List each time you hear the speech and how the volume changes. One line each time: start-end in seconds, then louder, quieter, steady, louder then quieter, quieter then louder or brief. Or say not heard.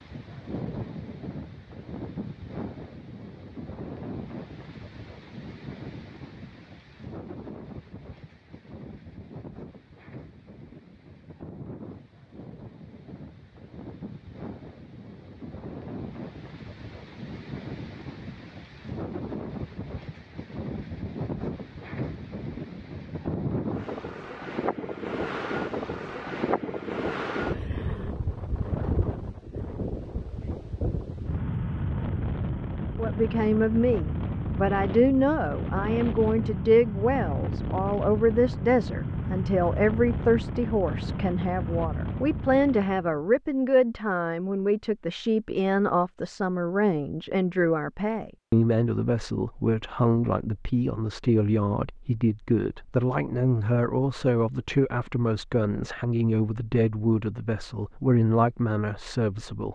33.0-59.7 steady.